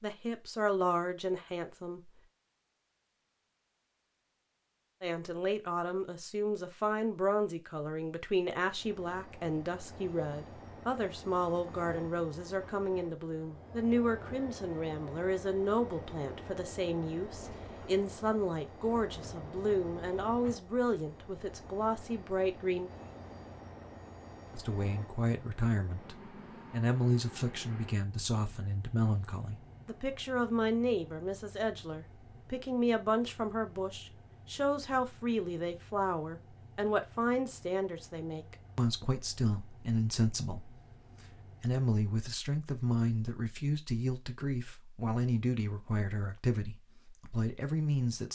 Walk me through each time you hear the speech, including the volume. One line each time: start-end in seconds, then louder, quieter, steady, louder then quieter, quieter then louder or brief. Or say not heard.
0.0-2.1 brief
5.0-22.9 steady
24.5-48.3 steady.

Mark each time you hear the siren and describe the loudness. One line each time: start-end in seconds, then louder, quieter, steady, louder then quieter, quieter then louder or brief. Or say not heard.
not heard.